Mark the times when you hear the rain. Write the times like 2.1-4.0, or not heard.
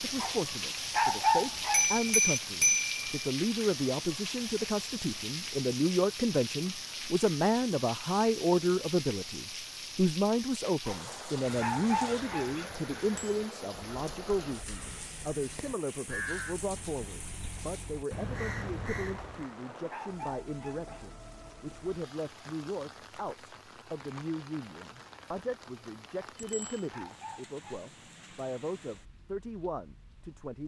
0.0-30.6.